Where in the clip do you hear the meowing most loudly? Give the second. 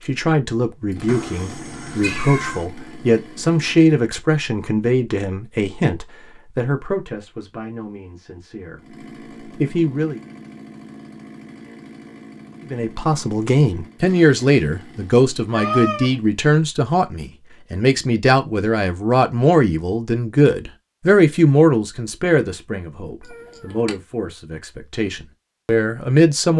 16 s.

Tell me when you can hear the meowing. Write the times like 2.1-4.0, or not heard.
1.1-2.6, 15.5-16.1, 23.2-23.9.